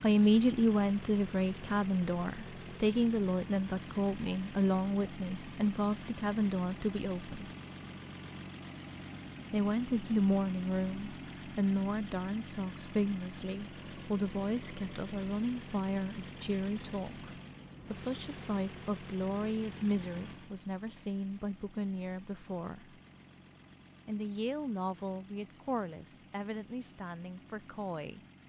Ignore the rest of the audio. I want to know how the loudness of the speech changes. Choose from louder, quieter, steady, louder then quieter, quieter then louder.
quieter.